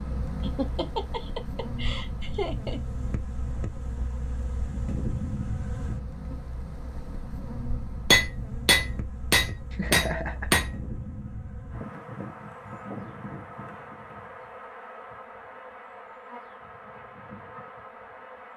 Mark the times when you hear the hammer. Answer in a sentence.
The hammer can be heard from 8.1 to 10.8 s.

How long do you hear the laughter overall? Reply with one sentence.
The laughter can be heard for 3 seconds in total.